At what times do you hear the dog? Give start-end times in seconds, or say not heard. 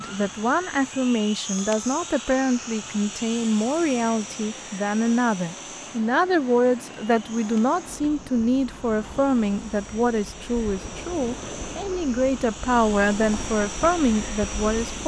not heard.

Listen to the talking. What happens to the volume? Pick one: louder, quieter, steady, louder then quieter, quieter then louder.
steady.